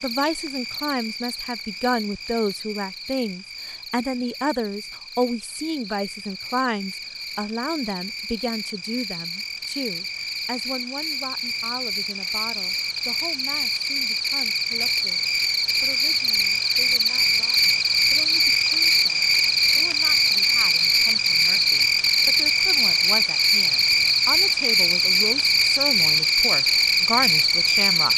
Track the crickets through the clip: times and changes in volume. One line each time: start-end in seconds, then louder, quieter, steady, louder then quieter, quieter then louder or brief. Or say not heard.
0.0-28.1 louder.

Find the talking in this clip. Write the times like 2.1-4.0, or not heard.
0.0-28.1.